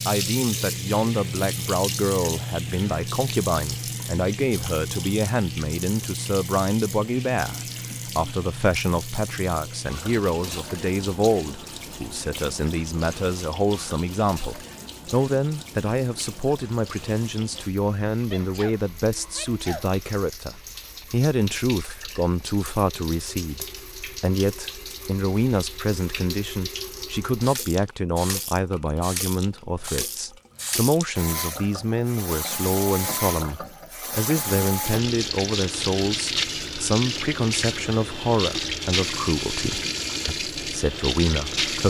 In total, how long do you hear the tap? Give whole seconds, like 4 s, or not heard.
42 s.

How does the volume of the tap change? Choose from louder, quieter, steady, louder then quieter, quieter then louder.
quieter then louder.